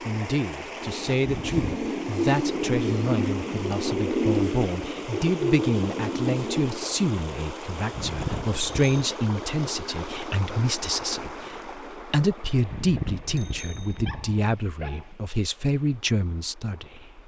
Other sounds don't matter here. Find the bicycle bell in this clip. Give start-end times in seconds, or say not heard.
1.2-1.9, 7.9-8.9, 12.7-14.4.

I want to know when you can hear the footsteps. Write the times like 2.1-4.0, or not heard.
not heard.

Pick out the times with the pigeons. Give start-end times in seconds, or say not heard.
0.8-6.9.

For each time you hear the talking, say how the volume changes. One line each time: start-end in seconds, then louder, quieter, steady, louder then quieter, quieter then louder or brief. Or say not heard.
0.0-17.2 steady.